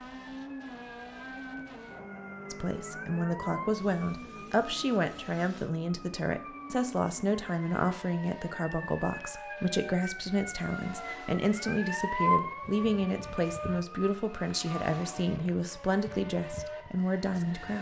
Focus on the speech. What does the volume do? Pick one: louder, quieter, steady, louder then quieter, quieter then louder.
steady.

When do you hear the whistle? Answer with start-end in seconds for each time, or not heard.
not heard.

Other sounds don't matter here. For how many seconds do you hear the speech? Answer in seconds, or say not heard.
15 s.